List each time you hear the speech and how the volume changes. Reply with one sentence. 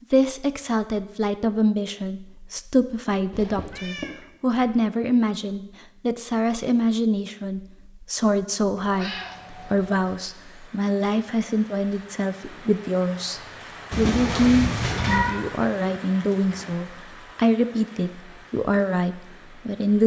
You can hear the speech from 0.1 to 20.0 s, at a steady volume.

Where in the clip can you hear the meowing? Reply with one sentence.
You can hear the meowing from 3.3 to 4.3 s, from 8.8 to 10.2 s and from 13.9 to 15.4 s.